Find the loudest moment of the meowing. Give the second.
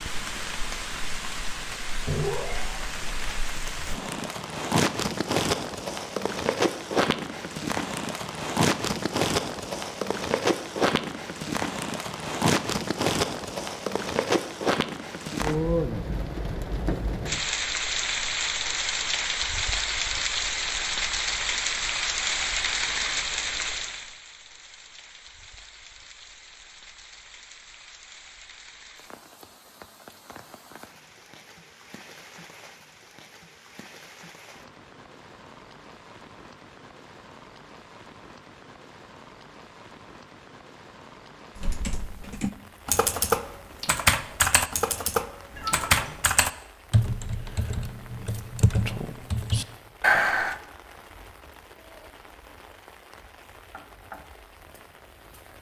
2 s.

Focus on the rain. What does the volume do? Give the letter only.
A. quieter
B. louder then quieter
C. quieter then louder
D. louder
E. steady
A.